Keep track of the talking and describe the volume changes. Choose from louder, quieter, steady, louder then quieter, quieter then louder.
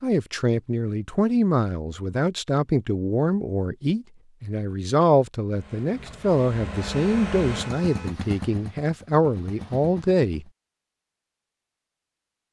steady.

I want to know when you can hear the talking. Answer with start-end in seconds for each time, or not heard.
0.0-10.4.